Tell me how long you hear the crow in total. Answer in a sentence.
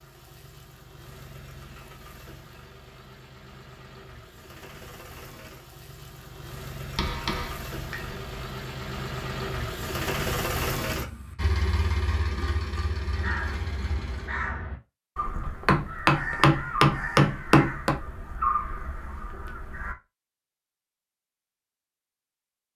The crow can be heard for 7 seconds in total.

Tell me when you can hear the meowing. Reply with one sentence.
The meowing can't be heard in this clip.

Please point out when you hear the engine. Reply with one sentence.
The engine can be heard from 0.0 to 14.4 s.